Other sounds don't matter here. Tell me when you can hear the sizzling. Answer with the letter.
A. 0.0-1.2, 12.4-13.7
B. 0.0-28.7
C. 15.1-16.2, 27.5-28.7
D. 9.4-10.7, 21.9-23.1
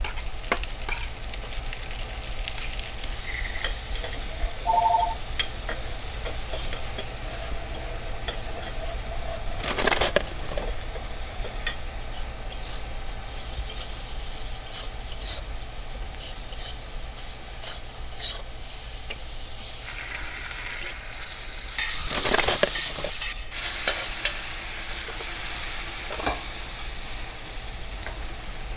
B.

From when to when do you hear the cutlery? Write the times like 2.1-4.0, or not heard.
9.4-10.7, 21.9-23.1.